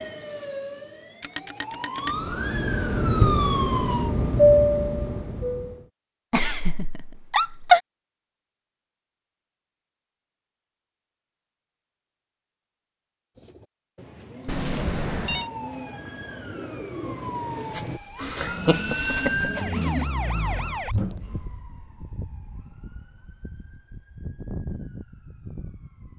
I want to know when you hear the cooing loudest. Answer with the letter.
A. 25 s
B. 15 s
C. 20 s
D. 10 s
C.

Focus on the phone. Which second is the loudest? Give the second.
15 s.